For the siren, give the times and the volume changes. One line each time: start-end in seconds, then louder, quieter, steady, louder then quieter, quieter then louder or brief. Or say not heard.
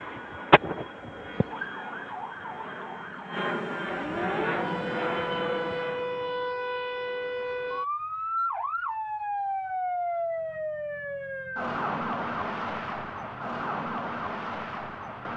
0.0-15.3 steady.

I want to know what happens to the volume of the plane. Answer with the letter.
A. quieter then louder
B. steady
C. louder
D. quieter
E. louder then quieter
C.